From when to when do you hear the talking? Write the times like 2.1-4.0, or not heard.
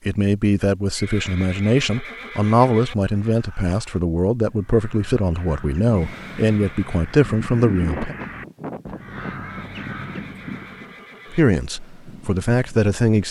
0.1-8.2, 11.3-13.2.